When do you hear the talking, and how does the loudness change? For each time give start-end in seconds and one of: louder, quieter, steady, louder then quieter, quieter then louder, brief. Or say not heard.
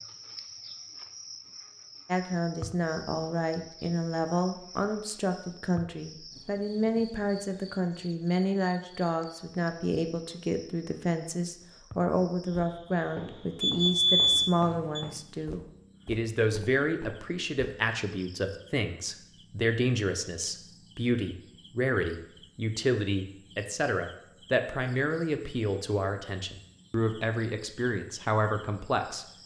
2.0-29.2 steady.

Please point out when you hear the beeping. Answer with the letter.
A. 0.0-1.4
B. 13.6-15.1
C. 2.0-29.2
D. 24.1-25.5
B.